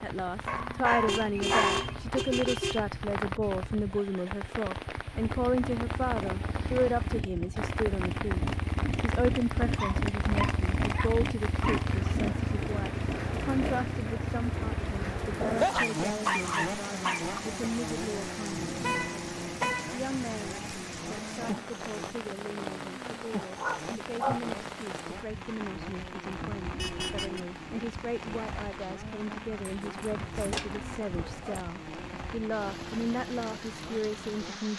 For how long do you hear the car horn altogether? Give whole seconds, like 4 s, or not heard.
4 s.